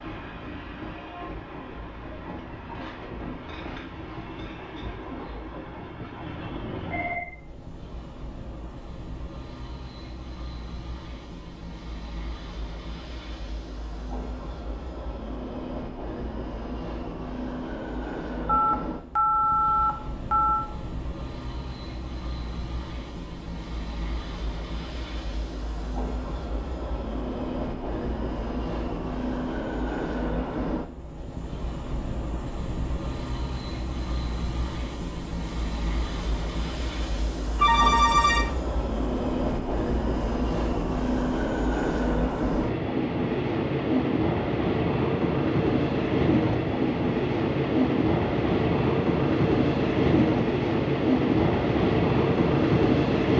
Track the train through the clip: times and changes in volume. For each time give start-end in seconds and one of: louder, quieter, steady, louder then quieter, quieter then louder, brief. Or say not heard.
0.0-53.3 louder.